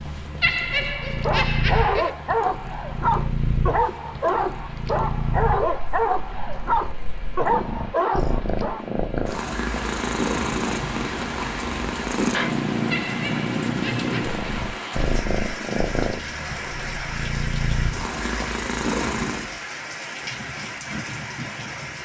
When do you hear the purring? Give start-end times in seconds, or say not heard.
0.0-19.6.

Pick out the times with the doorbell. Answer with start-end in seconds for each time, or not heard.
not heard.